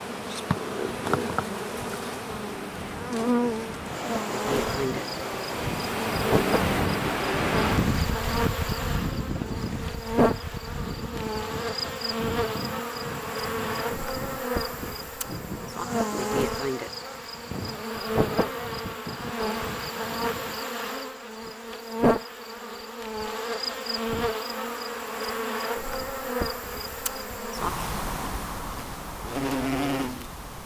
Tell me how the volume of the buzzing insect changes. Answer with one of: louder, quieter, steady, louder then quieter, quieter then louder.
steady.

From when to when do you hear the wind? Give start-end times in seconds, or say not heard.
0.0-20.6.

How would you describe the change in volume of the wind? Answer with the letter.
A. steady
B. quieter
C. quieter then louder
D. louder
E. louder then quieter
E.